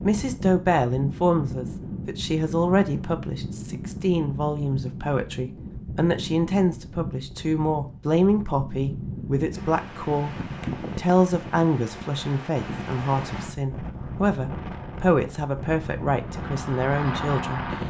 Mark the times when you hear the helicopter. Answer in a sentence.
The helicopter can be heard from 16.2 to 17.8 s.